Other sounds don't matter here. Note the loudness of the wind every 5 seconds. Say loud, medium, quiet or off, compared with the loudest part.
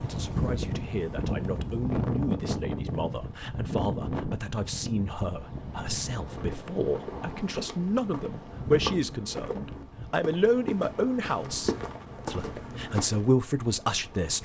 loud, medium, quiet.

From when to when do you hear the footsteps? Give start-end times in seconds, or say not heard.
6.2-13.3.